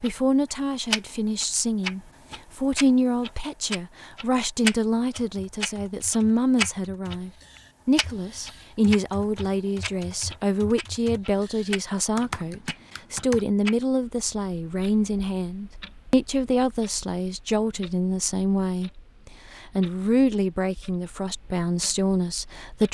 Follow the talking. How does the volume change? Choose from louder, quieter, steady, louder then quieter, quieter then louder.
steady.